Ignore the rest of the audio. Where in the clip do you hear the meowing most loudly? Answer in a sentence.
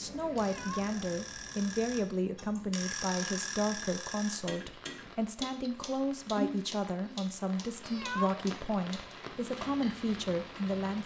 The volume of the meowing peaks at 8 seconds.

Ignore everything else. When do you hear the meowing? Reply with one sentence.
The meowing can be heard from 0.3 to 0.9 s and from 7.8 to 8.4 s.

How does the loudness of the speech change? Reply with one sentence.
The volume of the speech stays about the same.